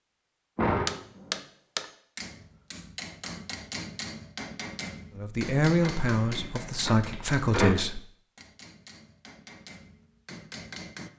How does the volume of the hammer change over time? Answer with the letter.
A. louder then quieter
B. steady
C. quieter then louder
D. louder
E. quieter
E.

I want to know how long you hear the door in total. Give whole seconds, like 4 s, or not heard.
3 s.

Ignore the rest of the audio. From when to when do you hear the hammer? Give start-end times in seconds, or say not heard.
0.8-11.1.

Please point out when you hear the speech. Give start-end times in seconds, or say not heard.
5.2-8.0.